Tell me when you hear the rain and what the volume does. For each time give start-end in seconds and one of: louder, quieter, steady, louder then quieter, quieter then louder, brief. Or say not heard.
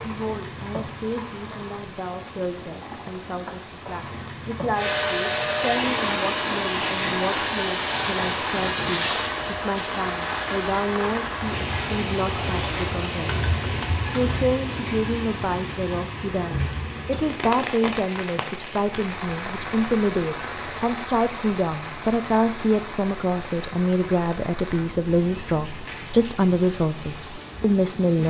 0.0-28.2 louder then quieter.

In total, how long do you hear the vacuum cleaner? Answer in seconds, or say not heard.
8 s.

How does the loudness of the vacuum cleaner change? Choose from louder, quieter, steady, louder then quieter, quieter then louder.
quieter.